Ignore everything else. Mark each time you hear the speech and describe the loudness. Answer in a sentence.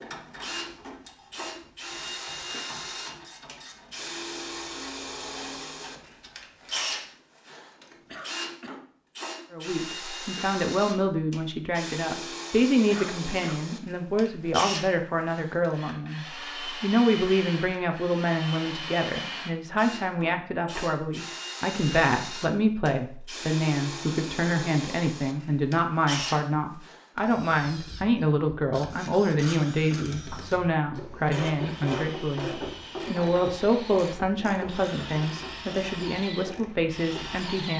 You can hear the speech from 9.5 to 37.7 s, at a steady volume.